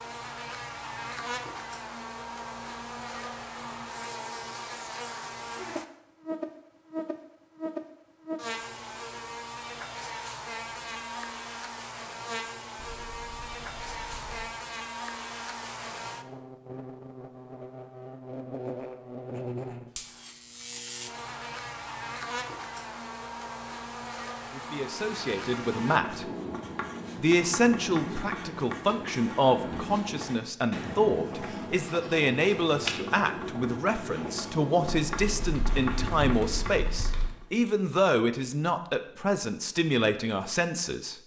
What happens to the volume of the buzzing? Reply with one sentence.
The loudness of the buzzing stays about the same.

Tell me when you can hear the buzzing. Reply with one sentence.
The buzzing can be heard from 0.0 to 26.0 s.